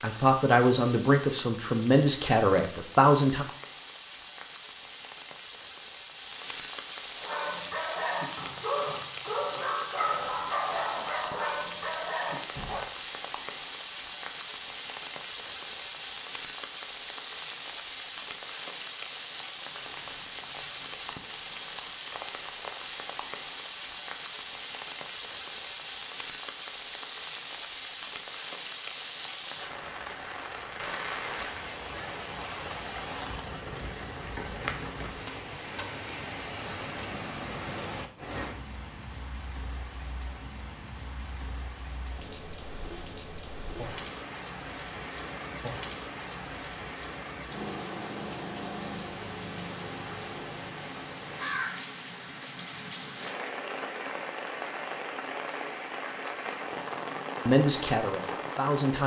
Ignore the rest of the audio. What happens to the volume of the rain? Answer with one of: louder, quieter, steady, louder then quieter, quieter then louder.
steady.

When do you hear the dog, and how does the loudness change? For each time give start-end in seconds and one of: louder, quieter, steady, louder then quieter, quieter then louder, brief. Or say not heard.
7.2-12.8 steady.